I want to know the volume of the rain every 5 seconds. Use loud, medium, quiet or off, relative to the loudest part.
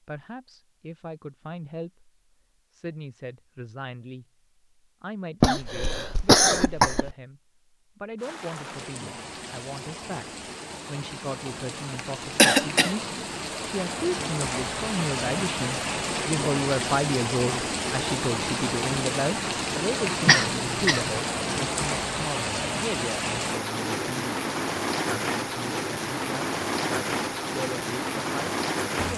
off, medium, medium, loud, loud, loud.